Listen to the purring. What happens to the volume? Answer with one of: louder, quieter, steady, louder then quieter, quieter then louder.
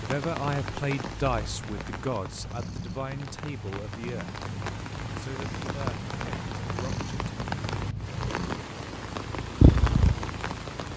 louder.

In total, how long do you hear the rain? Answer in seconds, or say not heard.
11 s.